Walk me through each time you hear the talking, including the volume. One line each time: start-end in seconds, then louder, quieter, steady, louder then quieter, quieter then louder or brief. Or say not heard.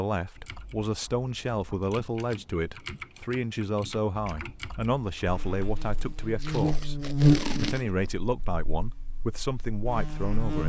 0.0-10.6 steady.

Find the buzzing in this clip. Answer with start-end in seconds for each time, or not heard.
5.2-10.6.